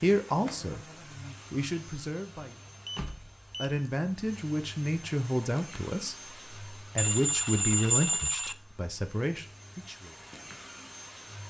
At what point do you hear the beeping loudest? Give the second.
8 s.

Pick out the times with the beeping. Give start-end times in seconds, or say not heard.
2.9-3.9, 7.0-8.6.